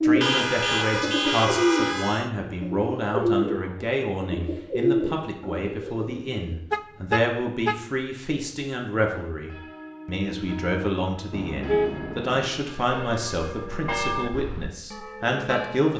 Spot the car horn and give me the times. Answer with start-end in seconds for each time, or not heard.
0.2-2.3, 6.7-7.8, 11.3-12.5.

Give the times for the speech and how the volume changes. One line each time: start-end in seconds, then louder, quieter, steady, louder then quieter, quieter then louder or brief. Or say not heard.
0.0-15.9 steady.